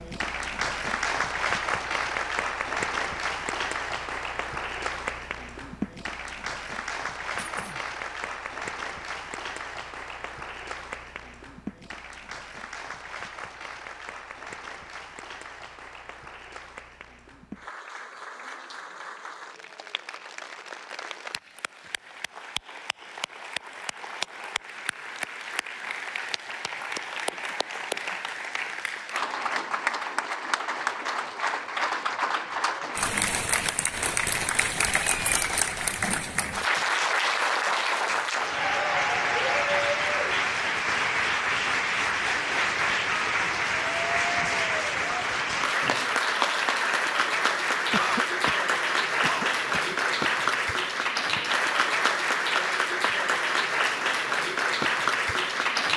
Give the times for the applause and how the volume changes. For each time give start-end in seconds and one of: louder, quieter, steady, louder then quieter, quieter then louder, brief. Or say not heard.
0.0-55.9 quieter then louder.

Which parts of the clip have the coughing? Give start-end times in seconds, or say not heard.
7.3-7.8, 27.3-28.2, 47.9-50.0.